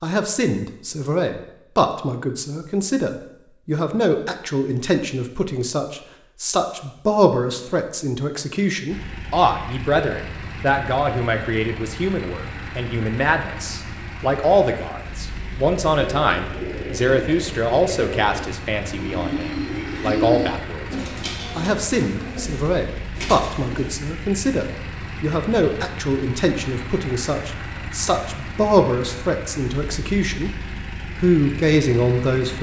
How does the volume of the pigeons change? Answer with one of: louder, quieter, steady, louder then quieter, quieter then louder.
louder then quieter.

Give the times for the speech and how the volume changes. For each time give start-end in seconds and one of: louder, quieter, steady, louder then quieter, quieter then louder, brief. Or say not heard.
0.0-30.5 steady
31.1-32.5 brief.